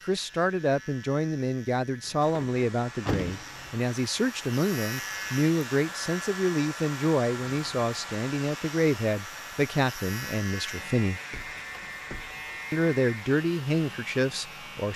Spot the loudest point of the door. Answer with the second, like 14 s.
3 s.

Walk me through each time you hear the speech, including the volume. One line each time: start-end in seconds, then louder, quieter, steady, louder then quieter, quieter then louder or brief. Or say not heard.
0.0-11.2 steady
12.7-14.9 brief.